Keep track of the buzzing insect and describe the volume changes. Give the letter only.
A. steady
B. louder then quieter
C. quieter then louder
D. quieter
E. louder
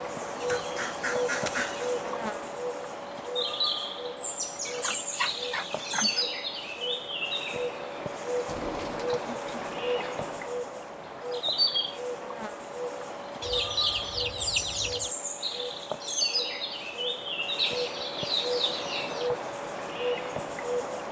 A.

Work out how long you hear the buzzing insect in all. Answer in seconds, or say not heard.
21 s.